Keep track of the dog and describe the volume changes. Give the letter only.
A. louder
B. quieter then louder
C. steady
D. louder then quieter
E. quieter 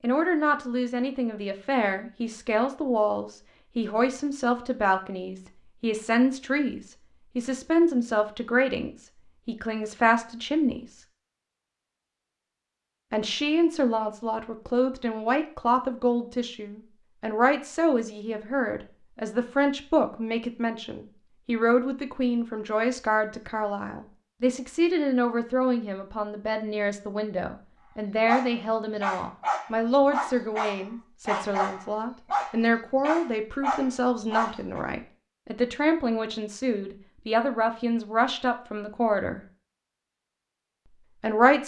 C.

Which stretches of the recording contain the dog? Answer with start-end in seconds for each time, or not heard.
28.2-34.9.